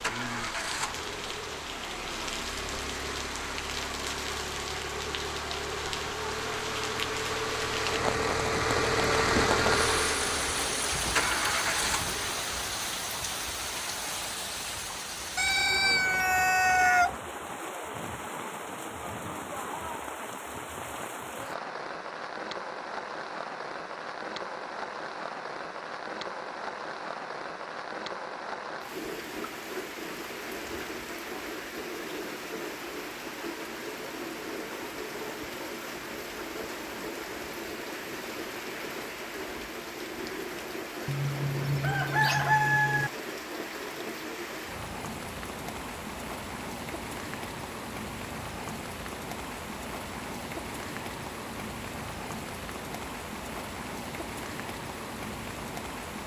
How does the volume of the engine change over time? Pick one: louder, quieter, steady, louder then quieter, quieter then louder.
louder.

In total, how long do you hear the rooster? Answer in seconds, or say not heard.
4 s.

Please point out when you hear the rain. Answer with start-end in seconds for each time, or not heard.
0.0-56.2.